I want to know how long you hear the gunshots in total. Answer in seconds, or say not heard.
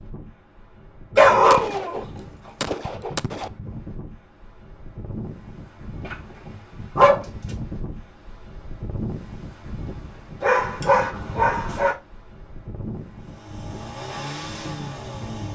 2 s.